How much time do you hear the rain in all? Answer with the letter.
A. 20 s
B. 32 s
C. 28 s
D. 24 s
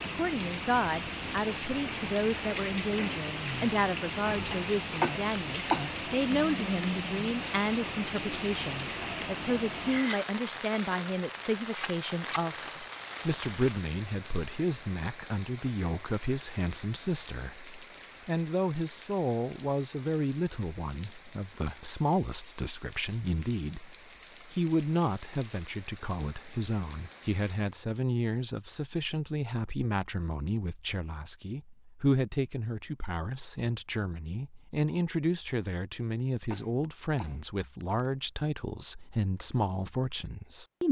C.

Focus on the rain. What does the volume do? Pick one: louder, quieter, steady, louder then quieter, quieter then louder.
quieter.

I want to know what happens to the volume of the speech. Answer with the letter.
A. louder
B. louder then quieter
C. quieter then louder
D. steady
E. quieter
D.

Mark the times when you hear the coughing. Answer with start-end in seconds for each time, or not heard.
5.0-6.9, 36.4-38.0.